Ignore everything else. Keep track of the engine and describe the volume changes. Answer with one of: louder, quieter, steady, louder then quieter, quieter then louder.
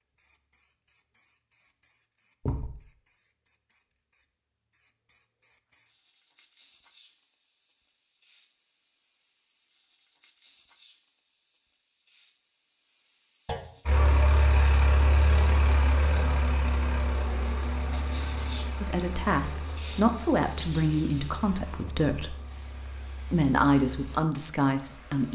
quieter.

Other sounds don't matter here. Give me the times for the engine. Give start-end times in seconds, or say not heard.
13.8-25.2.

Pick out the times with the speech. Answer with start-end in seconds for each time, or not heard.
18.8-22.4, 23.3-25.2.